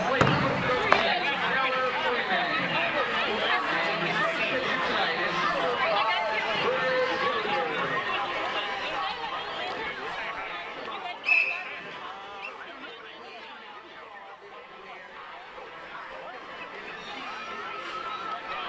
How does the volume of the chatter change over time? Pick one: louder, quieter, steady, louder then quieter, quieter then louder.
quieter.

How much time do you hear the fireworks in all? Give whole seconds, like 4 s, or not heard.
not heard.